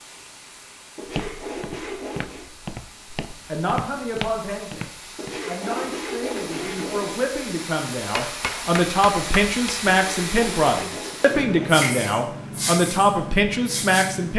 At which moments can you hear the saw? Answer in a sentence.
The saw can be heard from 0.9 to 2.5 s, from 5.2 to 7.2 s and from 9.9 to 11.8 s.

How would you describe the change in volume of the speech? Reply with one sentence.
The loudness of the speech goes up.